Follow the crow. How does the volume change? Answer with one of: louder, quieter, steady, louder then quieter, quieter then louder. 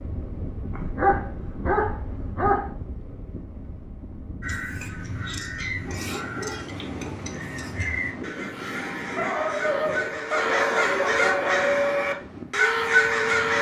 louder.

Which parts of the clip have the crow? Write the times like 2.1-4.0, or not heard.
4.4-13.5.